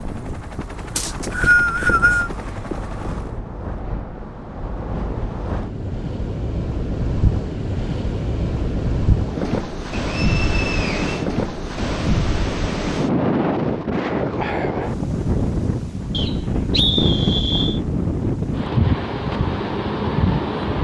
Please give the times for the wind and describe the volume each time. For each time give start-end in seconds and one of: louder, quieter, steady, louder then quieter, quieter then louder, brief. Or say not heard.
0.0-20.7 louder.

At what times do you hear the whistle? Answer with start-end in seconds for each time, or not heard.
0.9-2.3, 10.2-11.1, 16.1-17.8.